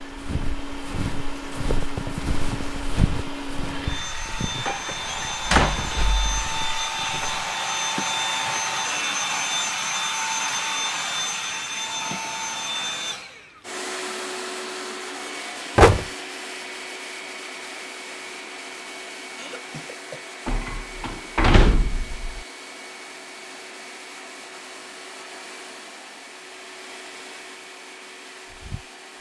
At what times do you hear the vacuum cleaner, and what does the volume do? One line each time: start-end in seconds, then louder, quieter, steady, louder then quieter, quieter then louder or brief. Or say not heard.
0.0-29.1 louder then quieter.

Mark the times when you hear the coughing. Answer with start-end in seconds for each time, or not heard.
19.4-20.2.